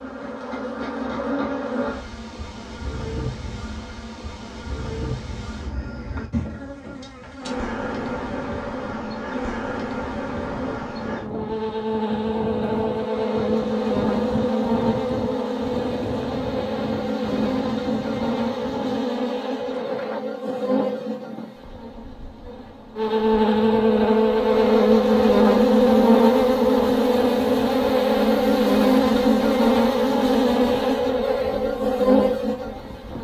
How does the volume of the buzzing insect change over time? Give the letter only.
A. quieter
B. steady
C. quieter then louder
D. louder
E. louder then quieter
D.